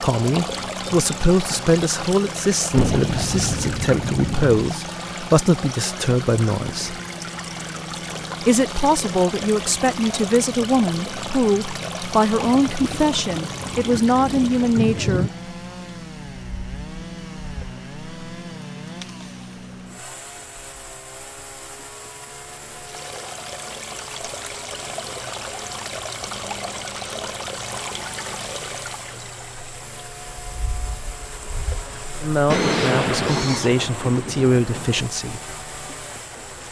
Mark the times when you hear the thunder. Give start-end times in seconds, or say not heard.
2.8-4.6, 12.4-15.3, 32.5-35.0.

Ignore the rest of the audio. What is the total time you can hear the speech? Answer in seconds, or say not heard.
17 s.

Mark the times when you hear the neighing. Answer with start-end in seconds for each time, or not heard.
not heard.